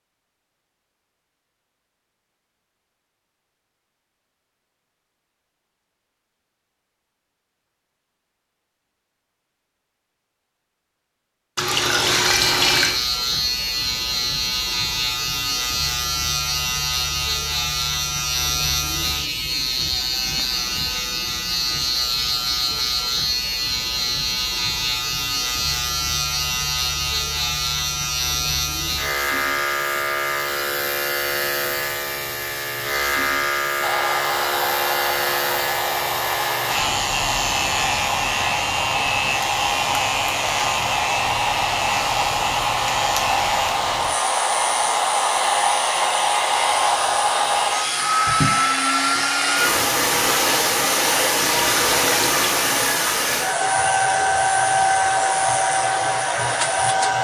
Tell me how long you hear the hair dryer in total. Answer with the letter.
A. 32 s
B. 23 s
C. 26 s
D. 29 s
B.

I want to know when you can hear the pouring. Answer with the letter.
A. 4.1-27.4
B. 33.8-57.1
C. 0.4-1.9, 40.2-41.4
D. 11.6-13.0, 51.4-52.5
D.